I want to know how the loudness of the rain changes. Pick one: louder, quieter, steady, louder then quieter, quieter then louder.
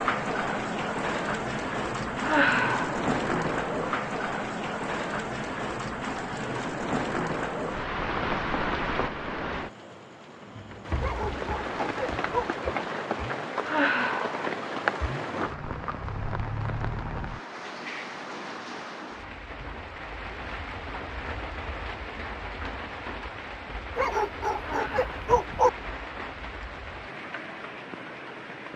quieter.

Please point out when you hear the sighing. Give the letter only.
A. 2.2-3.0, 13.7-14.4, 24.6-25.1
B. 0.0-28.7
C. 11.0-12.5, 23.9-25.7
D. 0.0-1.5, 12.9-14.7
A.